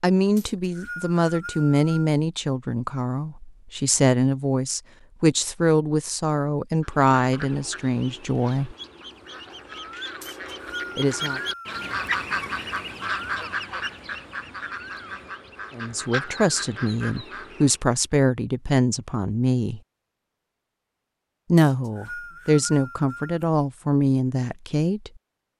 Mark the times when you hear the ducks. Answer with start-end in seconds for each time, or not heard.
6.8-17.8.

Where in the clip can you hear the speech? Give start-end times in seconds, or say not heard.
0.0-8.8, 10.9-11.4, 15.8-19.8, 21.5-25.1.